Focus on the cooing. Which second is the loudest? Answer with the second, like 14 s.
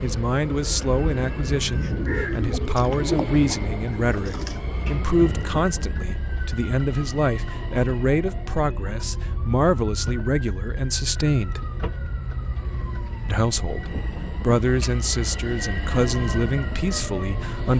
3 s.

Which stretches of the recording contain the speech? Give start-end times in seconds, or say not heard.
0.0-11.6, 13.2-17.7.